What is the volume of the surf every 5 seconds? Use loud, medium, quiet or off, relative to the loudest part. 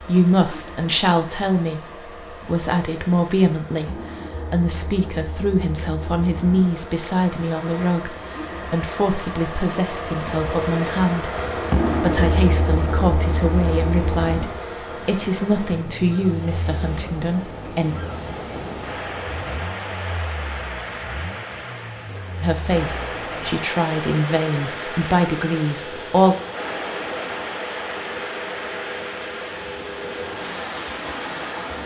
off, off, off, loud, loud, loud, loud.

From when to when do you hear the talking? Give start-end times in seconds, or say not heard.
0.0-17.9, 22.4-26.4.